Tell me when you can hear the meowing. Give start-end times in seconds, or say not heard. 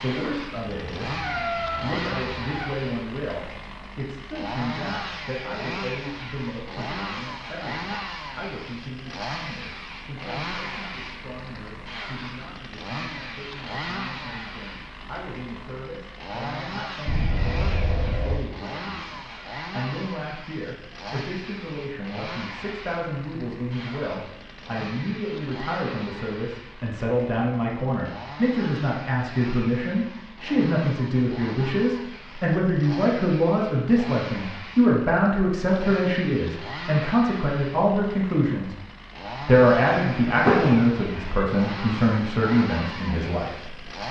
0.7-2.6, 17.1-18.4, 40.0-41.5.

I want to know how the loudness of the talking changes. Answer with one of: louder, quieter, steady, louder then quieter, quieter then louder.
quieter then louder.